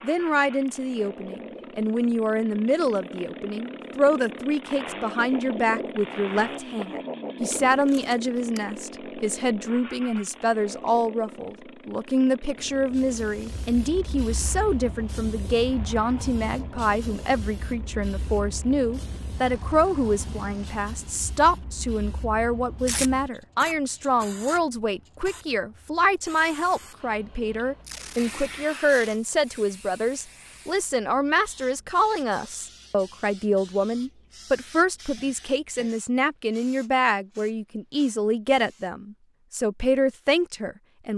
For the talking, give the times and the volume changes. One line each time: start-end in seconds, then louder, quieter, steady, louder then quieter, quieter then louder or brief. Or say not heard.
0.0-41.1 steady.